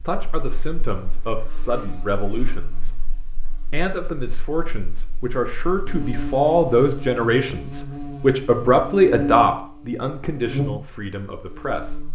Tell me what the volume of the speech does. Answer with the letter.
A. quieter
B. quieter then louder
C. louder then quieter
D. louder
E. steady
C.